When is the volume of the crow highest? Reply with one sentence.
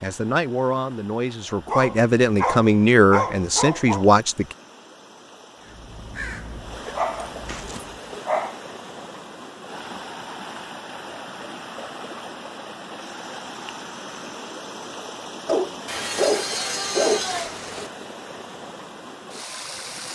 The loudest moment of the crow is at 6 seconds.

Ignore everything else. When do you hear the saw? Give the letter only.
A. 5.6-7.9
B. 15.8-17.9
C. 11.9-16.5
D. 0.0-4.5
B.